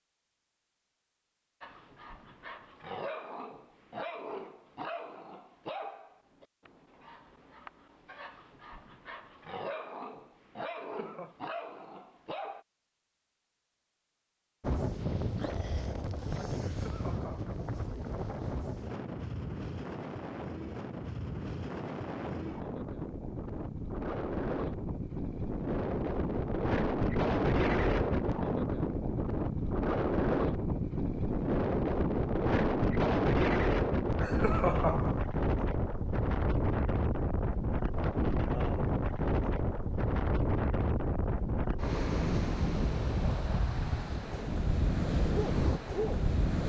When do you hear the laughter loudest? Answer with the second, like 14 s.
35 s.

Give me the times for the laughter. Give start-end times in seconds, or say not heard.
10.8-11.4, 16.6-17.6, 34.2-35.2.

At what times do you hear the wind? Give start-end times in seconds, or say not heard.
14.6-46.6.